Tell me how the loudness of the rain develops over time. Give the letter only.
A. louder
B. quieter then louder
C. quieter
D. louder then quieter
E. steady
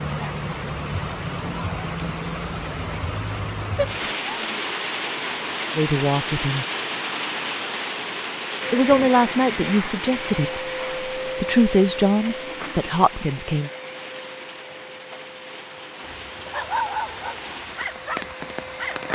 C.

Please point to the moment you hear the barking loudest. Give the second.
17 s.